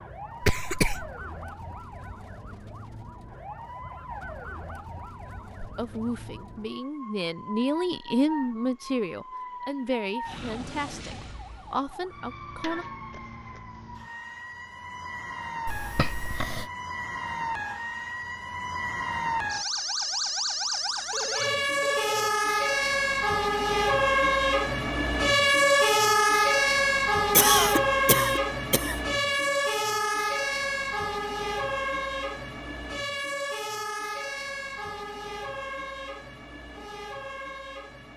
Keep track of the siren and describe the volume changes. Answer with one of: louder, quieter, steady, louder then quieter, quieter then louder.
louder then quieter.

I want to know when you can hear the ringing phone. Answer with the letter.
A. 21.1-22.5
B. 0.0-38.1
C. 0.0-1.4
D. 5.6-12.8
A.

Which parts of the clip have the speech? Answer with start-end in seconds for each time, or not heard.
5.6-12.8.